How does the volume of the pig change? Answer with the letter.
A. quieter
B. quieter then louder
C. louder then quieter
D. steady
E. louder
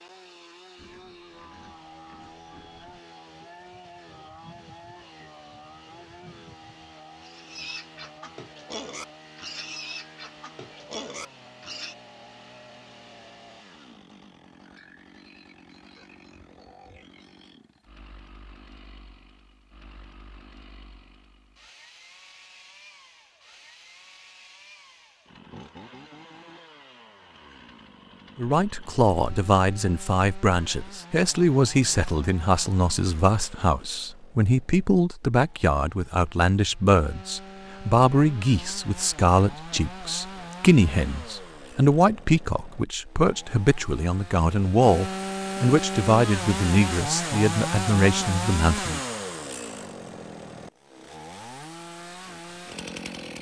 E.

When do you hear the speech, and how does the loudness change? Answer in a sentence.
The speech can be heard from 28.4 to 49.0 s, at a steady volume.